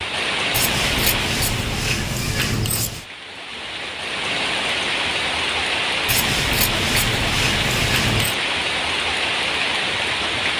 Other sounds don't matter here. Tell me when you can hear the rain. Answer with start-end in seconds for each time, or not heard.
0.0-10.5.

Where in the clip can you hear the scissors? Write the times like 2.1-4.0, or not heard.
0.5-3.0, 6.0-8.3.